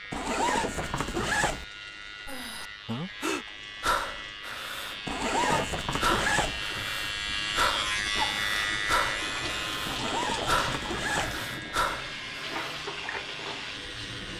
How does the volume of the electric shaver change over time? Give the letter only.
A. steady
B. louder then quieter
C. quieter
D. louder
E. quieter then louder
B.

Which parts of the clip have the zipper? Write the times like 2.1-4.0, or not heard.
0.1-1.6, 5.0-6.6, 9.8-11.4.